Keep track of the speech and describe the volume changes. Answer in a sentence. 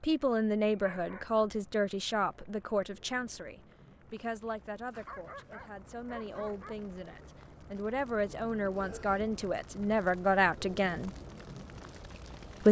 The volume of the speech goes down, then up.